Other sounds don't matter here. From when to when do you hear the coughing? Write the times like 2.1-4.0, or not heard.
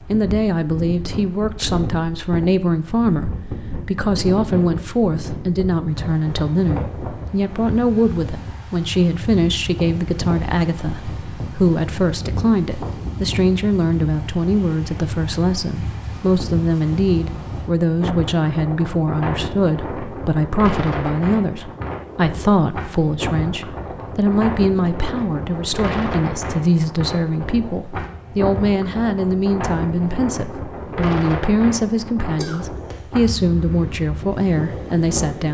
32.4-33.1.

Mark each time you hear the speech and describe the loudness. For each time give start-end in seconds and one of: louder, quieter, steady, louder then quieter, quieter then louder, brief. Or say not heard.
0.1-35.5 steady.